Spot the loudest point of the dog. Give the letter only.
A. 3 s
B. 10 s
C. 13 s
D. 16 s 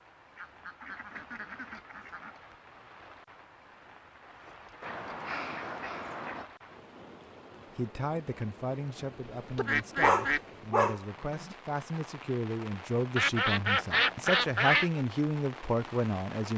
B.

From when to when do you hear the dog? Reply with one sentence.
The dog can be heard from 9.6 to 11.6 s.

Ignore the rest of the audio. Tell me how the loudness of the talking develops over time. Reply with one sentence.
The volume of the talking goes up.